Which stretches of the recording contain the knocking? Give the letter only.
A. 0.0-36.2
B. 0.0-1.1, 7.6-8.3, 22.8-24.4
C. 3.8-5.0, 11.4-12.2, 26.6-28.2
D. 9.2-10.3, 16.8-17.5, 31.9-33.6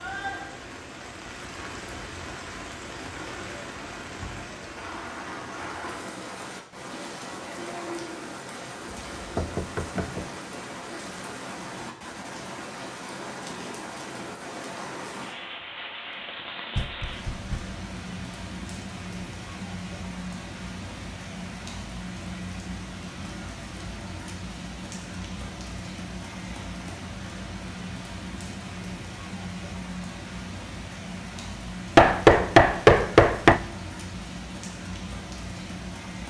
D.